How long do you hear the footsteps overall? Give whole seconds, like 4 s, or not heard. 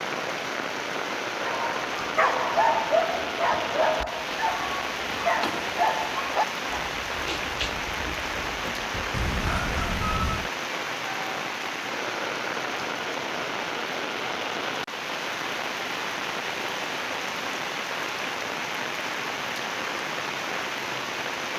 not heard.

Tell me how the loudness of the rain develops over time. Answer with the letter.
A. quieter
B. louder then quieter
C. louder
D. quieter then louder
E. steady
E.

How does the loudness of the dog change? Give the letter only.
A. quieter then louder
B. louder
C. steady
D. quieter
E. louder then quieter
D.